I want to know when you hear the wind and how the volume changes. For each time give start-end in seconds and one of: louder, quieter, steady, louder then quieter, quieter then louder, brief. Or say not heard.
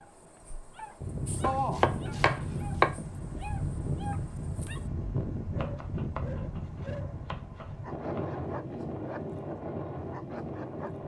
0.0-11.0 steady.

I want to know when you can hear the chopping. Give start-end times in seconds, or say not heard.
1.4-3.0, 5.5-8.2.